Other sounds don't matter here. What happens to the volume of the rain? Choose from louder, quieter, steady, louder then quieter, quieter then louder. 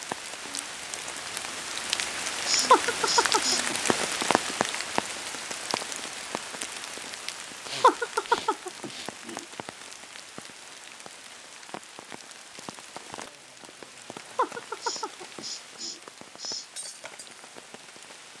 quieter.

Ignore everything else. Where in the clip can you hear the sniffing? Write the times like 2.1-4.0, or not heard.
2.5-3.6, 7.7-9.1, 14.8-16.7.